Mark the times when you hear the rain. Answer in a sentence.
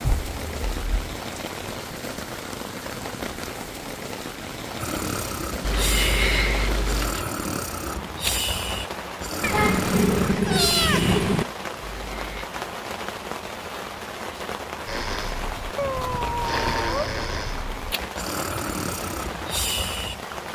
You can hear the rain from 0.0 to 20.4 s.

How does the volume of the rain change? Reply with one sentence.
The volume of the rain stays about the same.